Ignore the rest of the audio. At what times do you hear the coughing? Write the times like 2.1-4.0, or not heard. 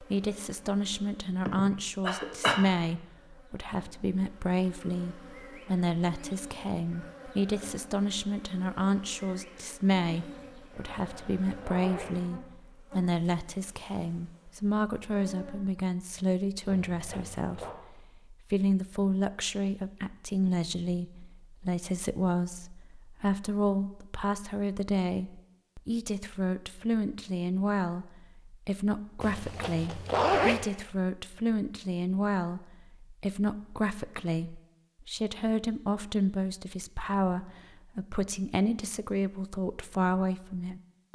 1.4-2.6.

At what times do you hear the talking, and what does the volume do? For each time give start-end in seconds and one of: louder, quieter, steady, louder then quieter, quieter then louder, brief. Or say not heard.
0.0-41.1 steady.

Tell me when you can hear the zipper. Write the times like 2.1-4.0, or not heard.
10.7-12.2, 16.7-17.8, 29.2-30.6.